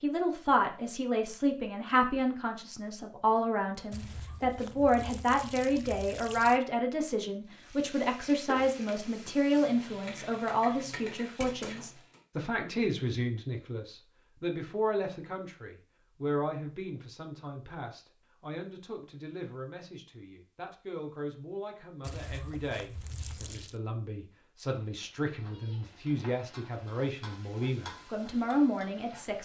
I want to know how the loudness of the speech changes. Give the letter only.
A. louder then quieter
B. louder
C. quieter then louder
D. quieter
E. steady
C.